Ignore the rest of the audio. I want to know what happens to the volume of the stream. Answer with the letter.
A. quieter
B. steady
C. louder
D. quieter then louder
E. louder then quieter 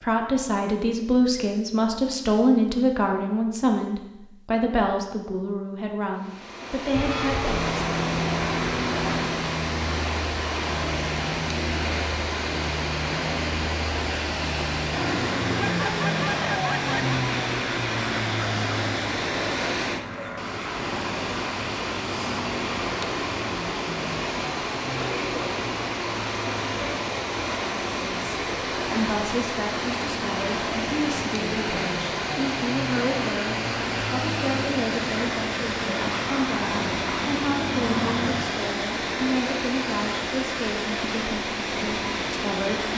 B.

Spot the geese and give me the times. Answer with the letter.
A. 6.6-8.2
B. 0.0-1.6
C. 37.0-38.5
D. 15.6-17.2
D.